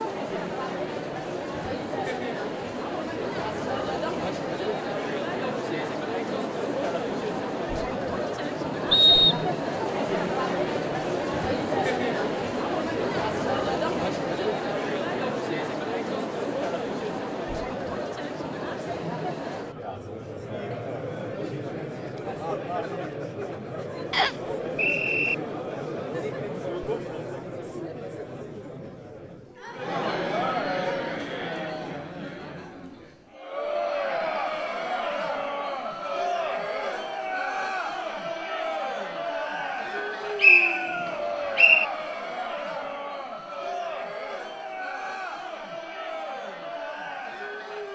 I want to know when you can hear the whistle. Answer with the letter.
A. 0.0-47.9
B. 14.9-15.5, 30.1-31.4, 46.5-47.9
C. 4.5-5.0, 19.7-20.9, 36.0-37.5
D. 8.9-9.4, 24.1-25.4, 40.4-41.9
D.